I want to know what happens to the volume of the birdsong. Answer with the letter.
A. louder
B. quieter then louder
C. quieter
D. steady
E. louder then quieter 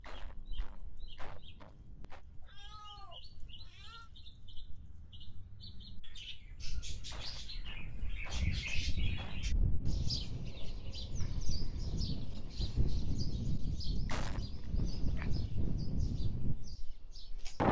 E.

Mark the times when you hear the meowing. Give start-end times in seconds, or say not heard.
2.4-4.1.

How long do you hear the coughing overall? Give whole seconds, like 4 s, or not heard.
5 s.